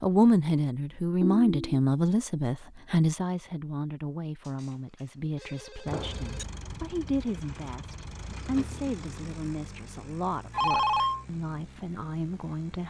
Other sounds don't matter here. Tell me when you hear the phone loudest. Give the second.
11 s.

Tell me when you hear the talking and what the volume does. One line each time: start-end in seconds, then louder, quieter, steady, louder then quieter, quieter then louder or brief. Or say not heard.
0.0-12.8 quieter.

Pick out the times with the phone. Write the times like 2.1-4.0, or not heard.
1.2-1.8, 5.4-6.5, 10.5-11.2.